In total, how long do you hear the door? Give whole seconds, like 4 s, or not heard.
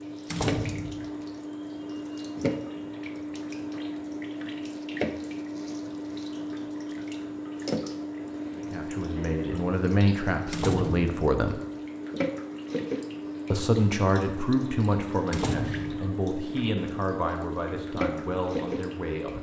2 s.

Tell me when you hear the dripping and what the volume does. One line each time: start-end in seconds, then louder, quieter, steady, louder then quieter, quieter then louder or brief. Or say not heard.
0.0-19.3 steady.